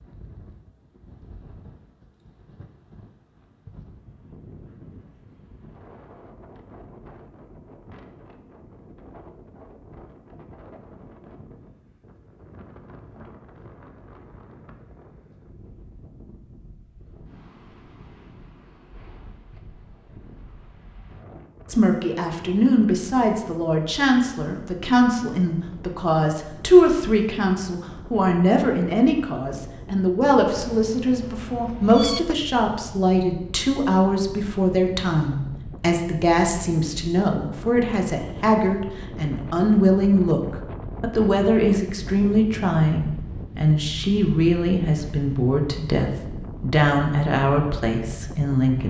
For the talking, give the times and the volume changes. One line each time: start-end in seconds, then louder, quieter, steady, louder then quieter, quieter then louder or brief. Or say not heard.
21.6-48.8 steady.